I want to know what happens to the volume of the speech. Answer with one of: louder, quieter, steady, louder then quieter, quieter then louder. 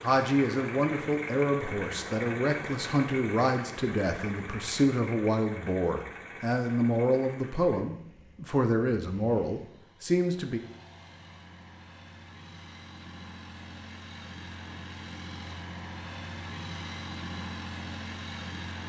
steady.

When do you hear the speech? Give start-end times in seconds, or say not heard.
0.0-10.6.